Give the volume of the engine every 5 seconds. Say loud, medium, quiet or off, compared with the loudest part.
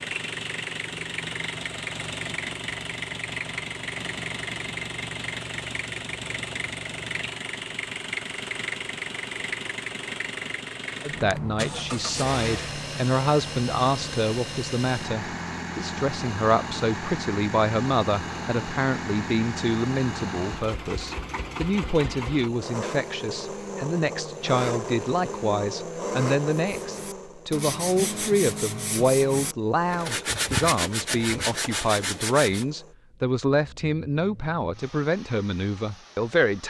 loud, loud, loud, loud, loud, loud, quiet, quiet.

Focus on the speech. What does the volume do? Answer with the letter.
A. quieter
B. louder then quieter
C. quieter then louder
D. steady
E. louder
D.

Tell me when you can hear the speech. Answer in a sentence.
You can hear the speech from 11.0 to 36.6 s.